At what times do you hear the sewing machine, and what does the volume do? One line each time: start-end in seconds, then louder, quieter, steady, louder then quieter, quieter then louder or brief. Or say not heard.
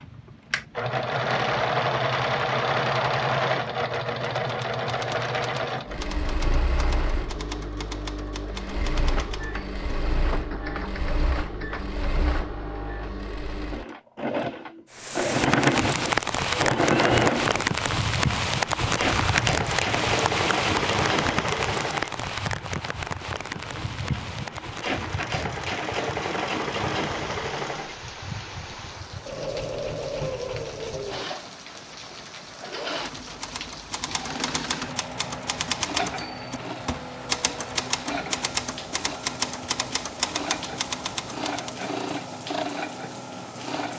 0.0-43.9 quieter.